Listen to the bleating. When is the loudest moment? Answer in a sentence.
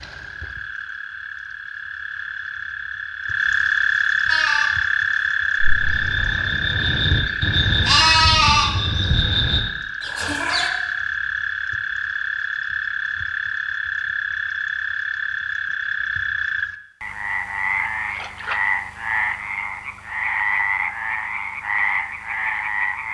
The loudest moment of the bleating is at 8 seconds.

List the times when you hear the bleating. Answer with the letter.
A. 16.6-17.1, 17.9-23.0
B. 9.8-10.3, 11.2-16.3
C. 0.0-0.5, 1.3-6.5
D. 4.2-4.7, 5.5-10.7
D.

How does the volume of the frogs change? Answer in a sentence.
The loudness of the frogs stays about the same.